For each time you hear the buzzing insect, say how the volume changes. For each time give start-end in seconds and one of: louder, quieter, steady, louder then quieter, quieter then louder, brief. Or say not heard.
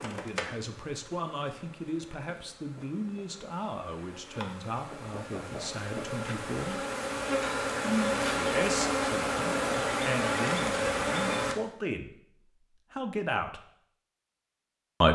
0.0-11.6 louder.